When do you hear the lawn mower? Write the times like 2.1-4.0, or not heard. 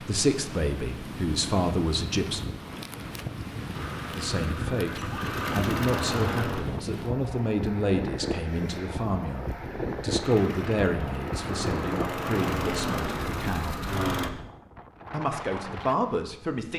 3.7-6.7, 10.2-14.3.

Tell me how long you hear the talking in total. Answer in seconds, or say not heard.
14 s.